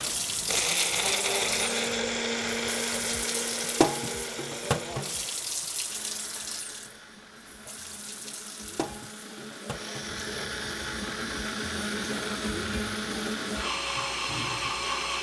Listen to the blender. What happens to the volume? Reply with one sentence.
The loudness of the blender goes down, then up.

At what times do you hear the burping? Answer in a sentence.
The burping can't be heard in this clip.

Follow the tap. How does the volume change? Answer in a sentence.
The loudness of the tap goes down.